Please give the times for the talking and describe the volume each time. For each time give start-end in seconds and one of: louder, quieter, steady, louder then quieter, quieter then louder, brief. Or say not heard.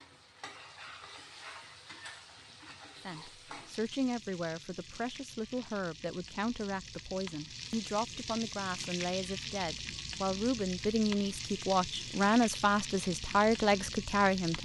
3.0-14.6 louder.